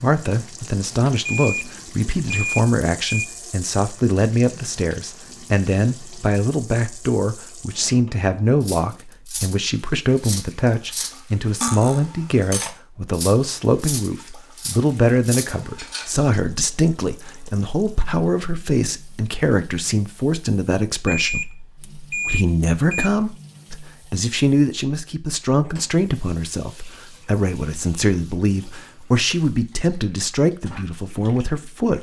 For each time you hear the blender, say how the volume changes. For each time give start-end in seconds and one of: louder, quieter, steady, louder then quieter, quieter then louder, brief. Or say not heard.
not heard.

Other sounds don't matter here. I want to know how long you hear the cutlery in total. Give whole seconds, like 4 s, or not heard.
7 s.